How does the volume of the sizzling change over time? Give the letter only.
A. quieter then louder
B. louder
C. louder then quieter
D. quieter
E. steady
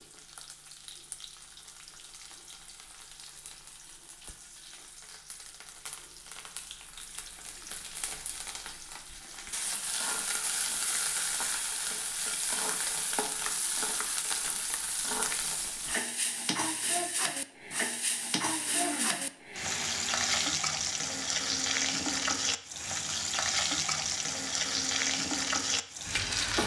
B.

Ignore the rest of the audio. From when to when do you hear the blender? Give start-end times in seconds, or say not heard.
18.6-20.5.